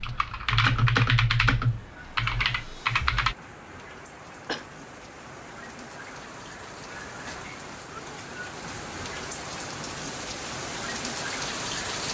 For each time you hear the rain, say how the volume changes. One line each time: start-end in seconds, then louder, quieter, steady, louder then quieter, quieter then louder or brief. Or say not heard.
0.0-12.1 louder.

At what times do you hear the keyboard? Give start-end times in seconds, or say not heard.
0.0-3.4.